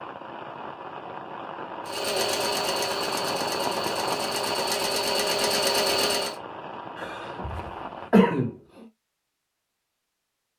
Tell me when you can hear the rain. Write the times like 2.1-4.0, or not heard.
0.0-8.1.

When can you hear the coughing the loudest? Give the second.
8 s.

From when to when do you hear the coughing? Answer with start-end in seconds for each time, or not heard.
7.0-8.8.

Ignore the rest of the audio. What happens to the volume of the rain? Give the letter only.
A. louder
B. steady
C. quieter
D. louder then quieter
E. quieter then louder
D.